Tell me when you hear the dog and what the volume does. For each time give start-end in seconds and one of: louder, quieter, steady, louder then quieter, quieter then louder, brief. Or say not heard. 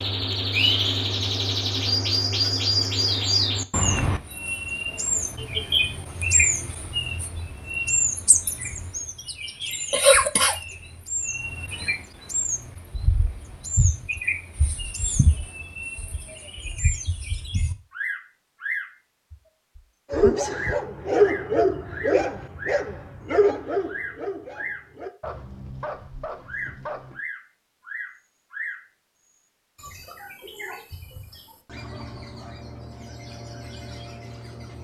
20.1-27.2 quieter.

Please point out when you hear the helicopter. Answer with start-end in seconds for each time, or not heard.
not heard.